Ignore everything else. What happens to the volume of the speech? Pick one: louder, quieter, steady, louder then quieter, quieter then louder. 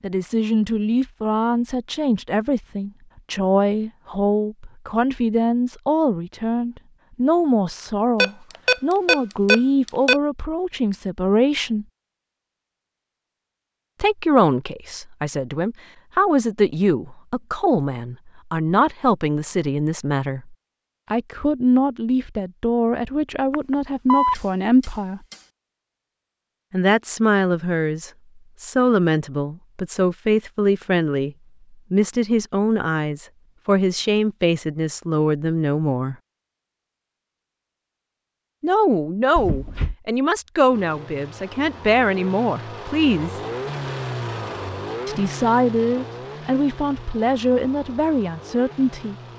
steady.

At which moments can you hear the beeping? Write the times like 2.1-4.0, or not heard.
8.2-10.2, 23.5-25.4, 39.4-40.0.